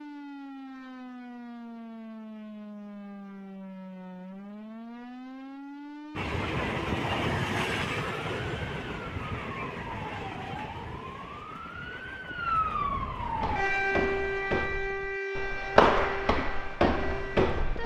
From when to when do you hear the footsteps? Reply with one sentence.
You can hear the footsteps from 13.4 to 17.8 s.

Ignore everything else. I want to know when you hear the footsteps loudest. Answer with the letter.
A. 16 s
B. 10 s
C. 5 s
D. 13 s
A.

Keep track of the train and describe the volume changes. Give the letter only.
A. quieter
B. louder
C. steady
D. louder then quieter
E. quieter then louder
A.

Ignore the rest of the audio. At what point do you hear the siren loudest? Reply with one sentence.
The volume of the siren peaks at 14 seconds.